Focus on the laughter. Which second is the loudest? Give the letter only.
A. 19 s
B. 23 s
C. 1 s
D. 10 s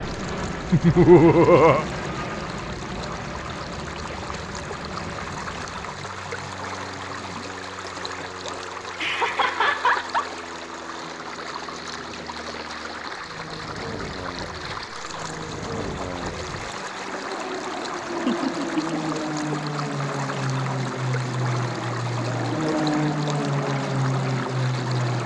C.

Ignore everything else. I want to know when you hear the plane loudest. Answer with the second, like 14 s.
23 s.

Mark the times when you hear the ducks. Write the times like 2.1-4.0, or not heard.
not heard.